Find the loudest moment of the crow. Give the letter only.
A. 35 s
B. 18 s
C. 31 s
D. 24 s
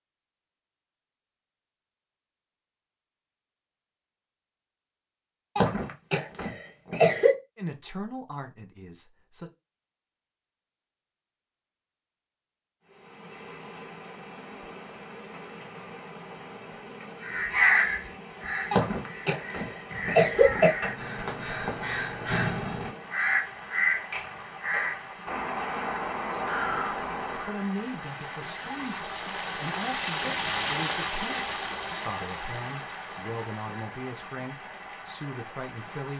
B.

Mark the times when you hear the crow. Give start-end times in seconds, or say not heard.
17.2-27.6.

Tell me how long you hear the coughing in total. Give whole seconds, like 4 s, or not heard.
4 s.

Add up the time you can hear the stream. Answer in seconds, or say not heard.
23 s.